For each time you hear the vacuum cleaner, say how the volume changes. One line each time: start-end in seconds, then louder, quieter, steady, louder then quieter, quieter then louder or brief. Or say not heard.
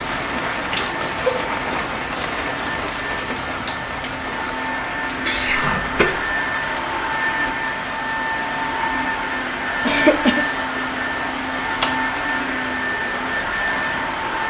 0.0-14.4 louder.